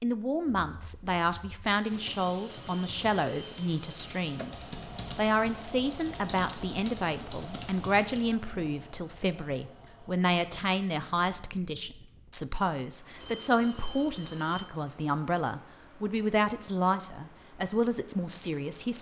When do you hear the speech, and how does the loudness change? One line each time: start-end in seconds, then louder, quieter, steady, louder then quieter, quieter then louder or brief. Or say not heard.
0.0-18.9 steady.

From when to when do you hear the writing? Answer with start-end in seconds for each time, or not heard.
not heard.